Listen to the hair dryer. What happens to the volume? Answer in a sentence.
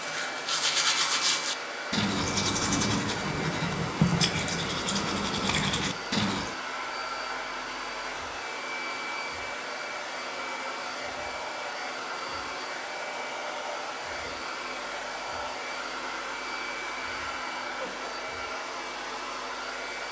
The volume of the hair dryer stays about the same.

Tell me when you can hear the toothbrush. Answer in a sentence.
You can hear the toothbrush from 0.0 to 6.5 s.